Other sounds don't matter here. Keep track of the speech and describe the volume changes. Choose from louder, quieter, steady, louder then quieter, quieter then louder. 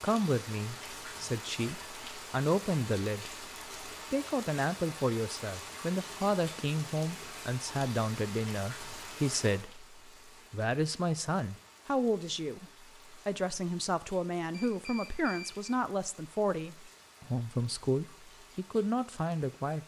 steady.